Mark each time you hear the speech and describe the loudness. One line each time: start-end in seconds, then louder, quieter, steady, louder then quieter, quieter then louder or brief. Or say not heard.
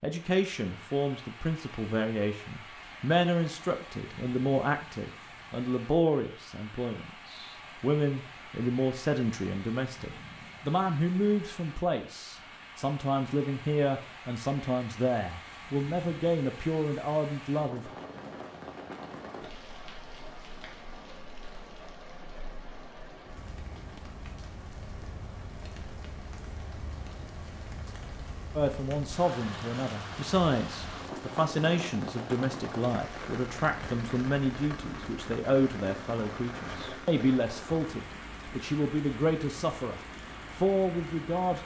0.0-17.9 steady
28.6-41.6 steady.